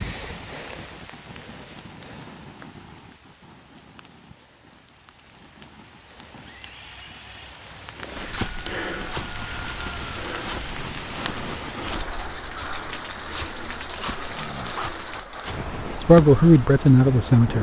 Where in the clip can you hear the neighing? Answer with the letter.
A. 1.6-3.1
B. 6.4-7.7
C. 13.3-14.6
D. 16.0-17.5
B.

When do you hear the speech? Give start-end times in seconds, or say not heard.
16.0-17.5.